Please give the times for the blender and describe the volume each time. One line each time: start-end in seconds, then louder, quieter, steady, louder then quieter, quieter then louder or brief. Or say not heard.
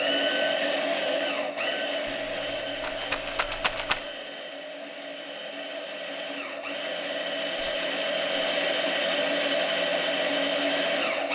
0.0-11.3 quieter then louder.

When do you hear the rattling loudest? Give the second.
4 s.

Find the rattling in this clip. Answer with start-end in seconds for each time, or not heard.
2.0-4.0, 7.6-8.7.